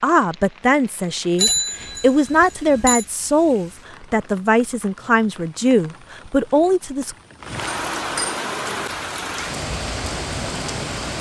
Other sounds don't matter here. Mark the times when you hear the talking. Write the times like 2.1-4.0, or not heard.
0.0-7.2.